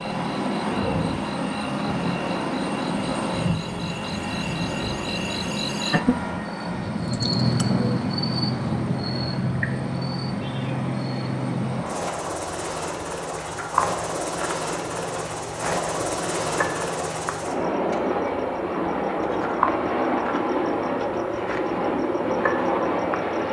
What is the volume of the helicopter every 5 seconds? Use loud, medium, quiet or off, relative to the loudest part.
loud, medium, medium, loud, loud.